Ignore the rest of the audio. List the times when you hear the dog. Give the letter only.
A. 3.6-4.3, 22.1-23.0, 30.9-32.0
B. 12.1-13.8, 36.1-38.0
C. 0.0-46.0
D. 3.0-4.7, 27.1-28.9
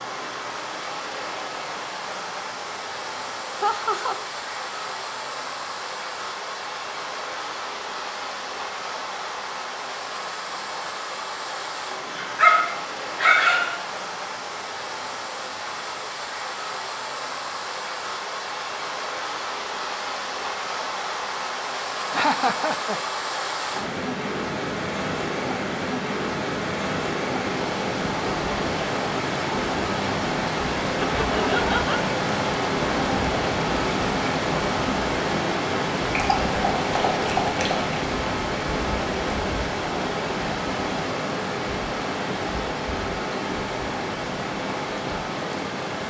B.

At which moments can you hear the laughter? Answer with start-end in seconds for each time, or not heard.
3.6-4.3, 22.1-23.0, 30.9-32.0.